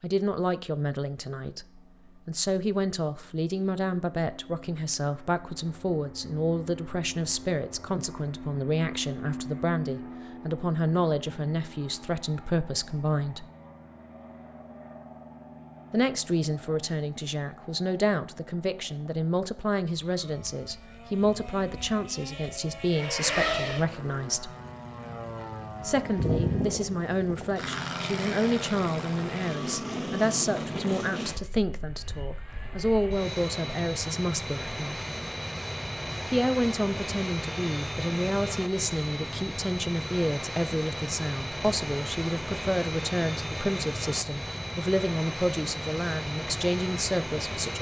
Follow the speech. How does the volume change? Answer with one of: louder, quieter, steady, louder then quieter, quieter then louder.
steady.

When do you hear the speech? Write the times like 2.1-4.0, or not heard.
0.0-13.4, 15.9-24.5, 25.8-35.0, 36.2-47.7.